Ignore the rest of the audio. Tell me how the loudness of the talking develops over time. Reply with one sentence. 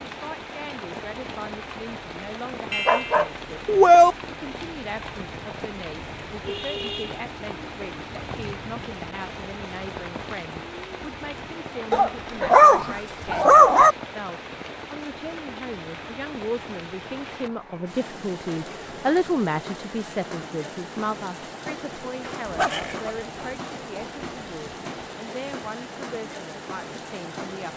The volume of the talking goes up, then down.